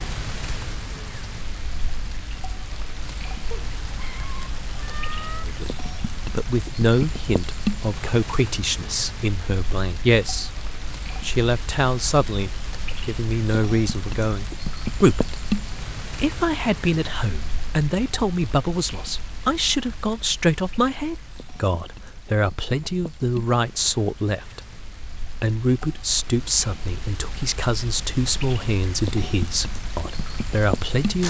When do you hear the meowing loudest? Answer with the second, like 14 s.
5 s.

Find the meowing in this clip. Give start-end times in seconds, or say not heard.
3.5-5.5.